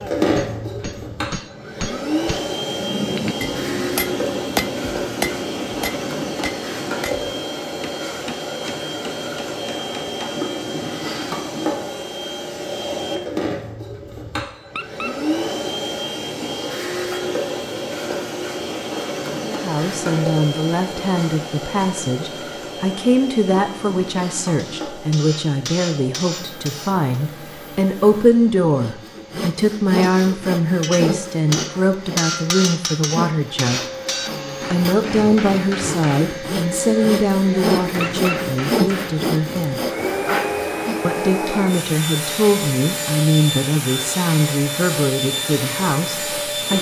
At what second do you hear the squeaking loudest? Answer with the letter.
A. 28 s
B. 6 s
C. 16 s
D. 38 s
D.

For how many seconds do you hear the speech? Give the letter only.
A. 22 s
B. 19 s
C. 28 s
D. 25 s
D.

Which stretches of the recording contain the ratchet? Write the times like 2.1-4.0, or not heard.
not heard.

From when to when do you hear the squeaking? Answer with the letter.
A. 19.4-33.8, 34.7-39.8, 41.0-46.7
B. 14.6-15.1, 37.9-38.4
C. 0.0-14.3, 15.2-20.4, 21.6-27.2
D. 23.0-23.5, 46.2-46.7
B.